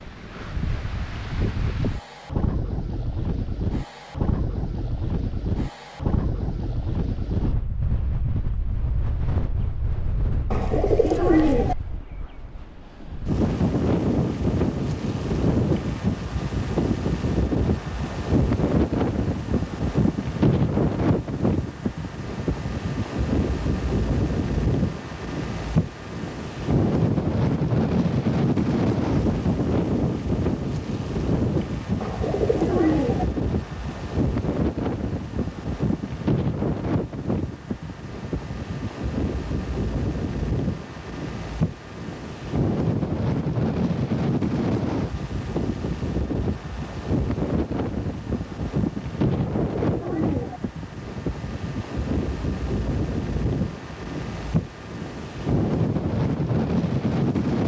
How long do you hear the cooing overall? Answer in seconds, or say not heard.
4 s.